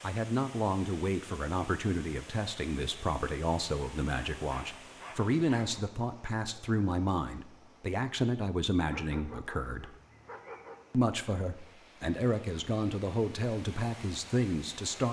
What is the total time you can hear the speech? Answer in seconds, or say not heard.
14 s.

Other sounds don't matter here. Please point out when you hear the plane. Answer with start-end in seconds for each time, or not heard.
not heard.